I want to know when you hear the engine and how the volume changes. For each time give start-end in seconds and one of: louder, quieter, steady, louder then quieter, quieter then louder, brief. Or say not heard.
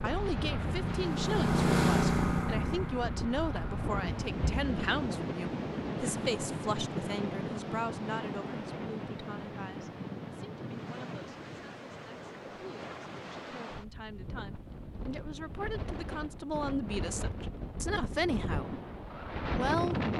0.0-4.3 louder then quieter.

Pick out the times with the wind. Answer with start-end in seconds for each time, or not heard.
0.0-20.1.